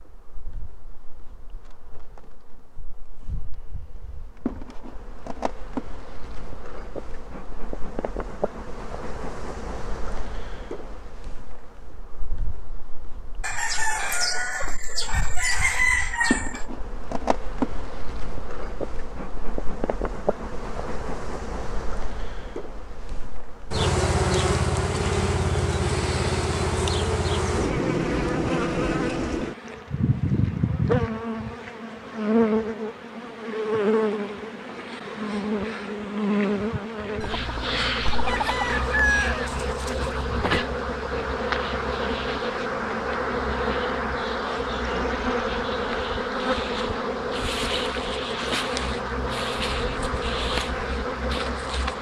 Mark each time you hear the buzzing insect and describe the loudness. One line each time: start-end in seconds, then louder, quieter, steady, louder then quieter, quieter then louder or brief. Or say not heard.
0.0-51.9 louder.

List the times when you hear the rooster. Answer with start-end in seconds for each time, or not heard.
13.4-16.6, 37.2-40.7.